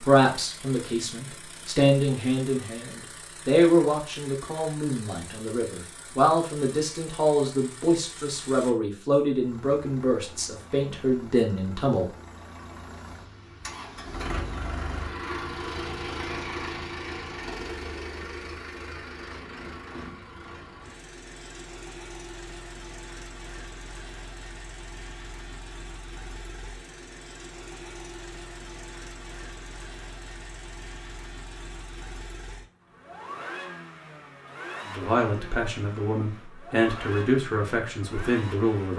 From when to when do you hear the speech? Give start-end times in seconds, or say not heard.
0.0-12.1, 34.9-38.9.